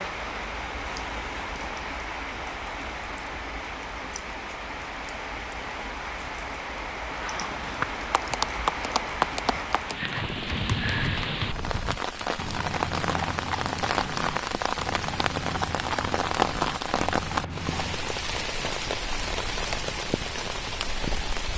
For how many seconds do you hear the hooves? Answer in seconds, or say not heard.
11 s.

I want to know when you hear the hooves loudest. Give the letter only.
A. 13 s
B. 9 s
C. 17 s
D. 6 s
B.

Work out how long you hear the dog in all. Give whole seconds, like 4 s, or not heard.
not heard.